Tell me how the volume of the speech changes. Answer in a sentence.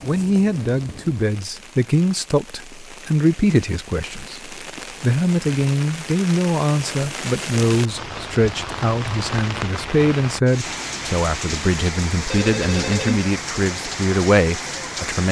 The loudness of the speech stays about the same.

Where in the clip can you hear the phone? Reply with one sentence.
The phone can be heard from 12.3 to 13.2 s.